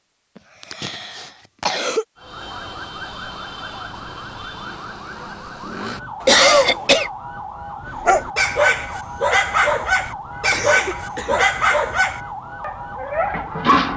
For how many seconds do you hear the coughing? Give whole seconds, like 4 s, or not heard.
4 s.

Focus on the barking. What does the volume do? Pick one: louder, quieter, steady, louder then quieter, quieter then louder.
quieter.